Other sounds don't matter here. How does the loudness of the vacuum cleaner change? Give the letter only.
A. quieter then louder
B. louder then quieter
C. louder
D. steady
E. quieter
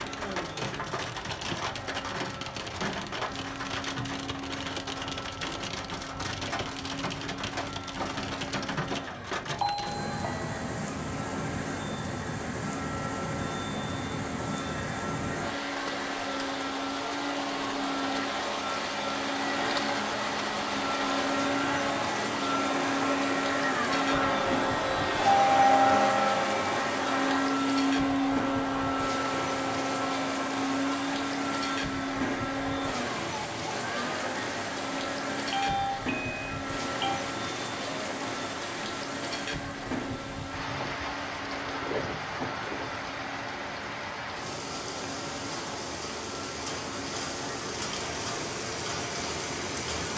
B.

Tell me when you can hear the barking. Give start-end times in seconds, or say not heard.
not heard.